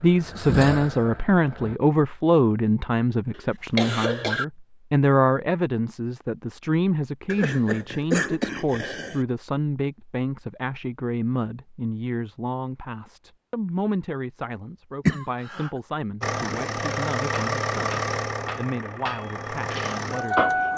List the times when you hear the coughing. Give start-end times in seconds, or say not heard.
3.4-4.5, 7.2-9.2, 15.1-15.7.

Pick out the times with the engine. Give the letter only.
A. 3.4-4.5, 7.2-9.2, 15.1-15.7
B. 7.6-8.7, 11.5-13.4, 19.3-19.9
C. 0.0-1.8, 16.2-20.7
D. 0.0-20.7
C.